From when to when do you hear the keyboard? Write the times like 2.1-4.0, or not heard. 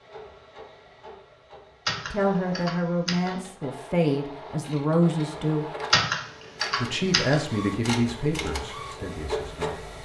1.9-3.5, 5.9-7.5.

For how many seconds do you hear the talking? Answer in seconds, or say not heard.
7 s.